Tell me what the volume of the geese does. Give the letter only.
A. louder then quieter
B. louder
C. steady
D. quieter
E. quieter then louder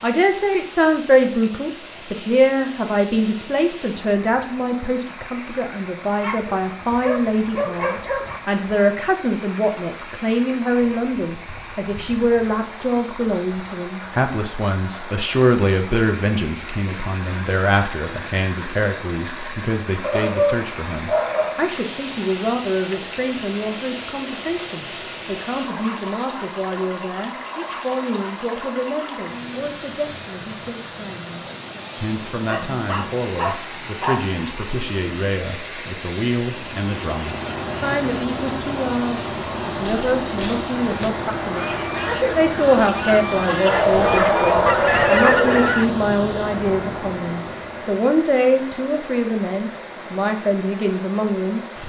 B.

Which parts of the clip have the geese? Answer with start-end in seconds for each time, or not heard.
39.8-45.9.